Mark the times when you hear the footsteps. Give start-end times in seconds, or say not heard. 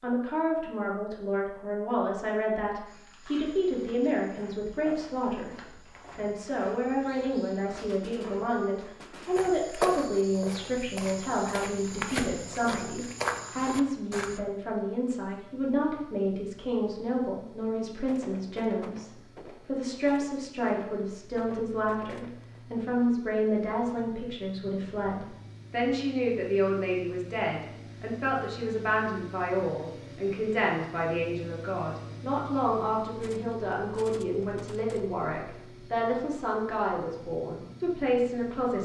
2.9-14.4.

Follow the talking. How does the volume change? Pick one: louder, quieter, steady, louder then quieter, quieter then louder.
steady.